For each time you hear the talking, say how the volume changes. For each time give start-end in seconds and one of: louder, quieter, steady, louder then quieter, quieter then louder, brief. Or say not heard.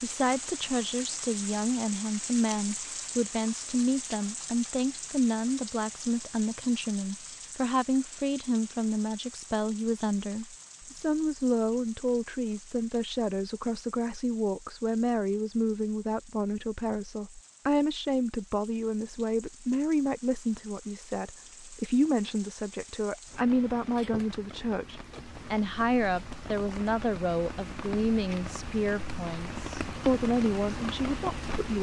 0.0-31.7 steady.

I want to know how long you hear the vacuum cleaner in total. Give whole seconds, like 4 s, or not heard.
not heard.